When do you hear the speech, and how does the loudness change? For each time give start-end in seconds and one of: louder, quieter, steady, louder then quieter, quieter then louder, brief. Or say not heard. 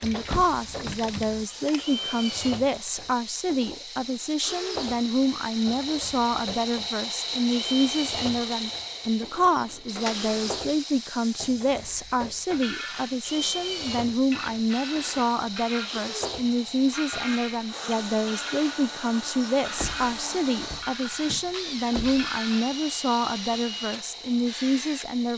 0.0-25.3 steady.